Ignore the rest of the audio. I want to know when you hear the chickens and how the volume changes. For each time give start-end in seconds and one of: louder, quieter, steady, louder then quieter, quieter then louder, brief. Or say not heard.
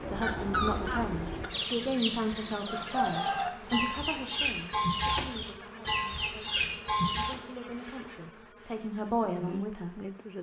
0.0-7.4 steady.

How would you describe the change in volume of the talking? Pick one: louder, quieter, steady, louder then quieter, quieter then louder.
quieter then louder.